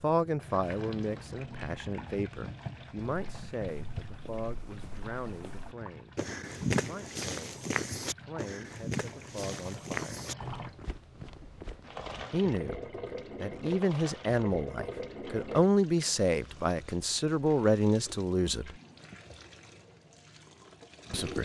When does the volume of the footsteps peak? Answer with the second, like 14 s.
7 s.